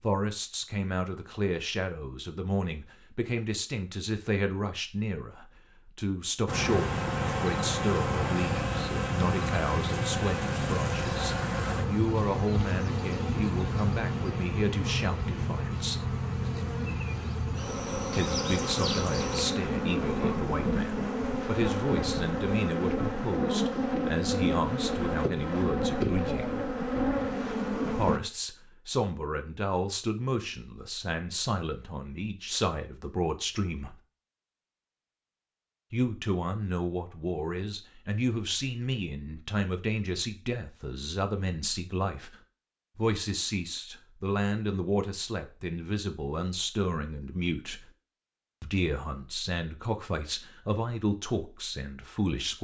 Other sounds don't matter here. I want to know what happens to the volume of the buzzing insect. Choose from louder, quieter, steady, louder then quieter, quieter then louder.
steady.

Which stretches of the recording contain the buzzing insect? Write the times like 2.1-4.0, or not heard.
6.5-28.2.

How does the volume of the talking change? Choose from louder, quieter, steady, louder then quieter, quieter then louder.
steady.